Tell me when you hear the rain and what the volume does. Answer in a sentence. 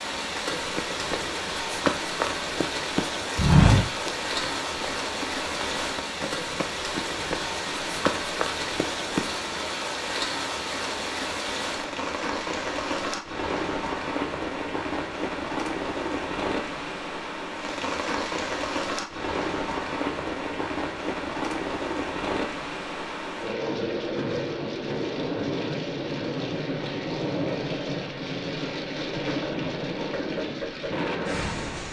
The rain can be heard from 0.0 to 31.8 s, at a steady volume.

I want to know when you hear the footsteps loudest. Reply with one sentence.
The volume of the footsteps peaks at 4 seconds.